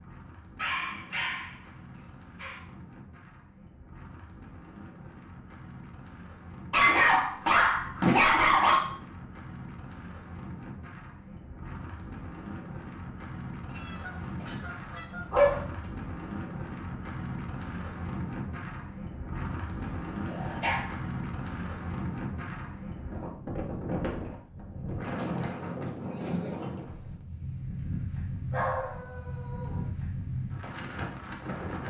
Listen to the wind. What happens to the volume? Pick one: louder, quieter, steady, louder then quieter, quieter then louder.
louder.